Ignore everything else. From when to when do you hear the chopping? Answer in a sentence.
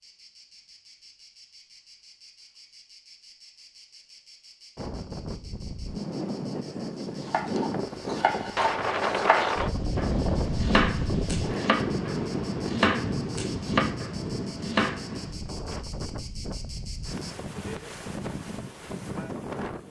The chopping can be heard from 7.2 to 15.2 s.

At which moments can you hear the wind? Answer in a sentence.
You can hear the wind from 4.8 to 19.8 s.